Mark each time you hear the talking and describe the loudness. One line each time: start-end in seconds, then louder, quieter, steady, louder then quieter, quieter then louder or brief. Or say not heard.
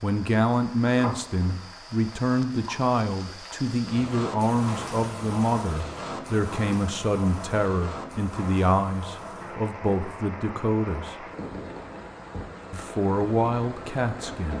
0.0-11.2 steady
12.7-14.5 brief.